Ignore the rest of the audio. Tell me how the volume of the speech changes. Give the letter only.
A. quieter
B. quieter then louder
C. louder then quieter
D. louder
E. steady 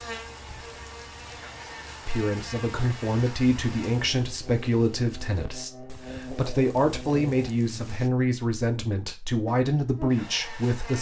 E.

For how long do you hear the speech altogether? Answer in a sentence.
You can hear the speech for 9 seconds altogether.